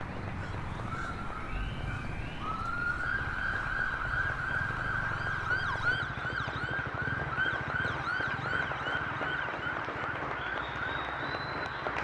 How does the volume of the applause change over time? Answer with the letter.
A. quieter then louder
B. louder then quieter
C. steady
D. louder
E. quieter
D.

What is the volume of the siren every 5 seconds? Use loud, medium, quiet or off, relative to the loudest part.
loud, loud, medium.